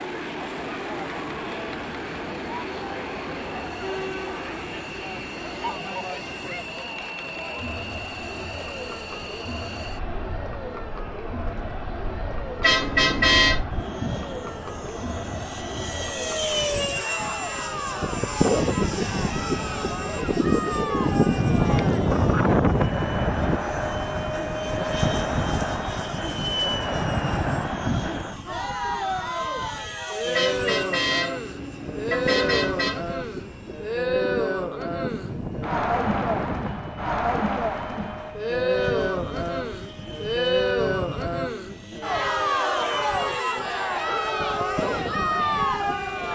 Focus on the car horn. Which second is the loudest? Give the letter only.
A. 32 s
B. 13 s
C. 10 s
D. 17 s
B.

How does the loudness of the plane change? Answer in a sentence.
The volume of the plane goes up, then down.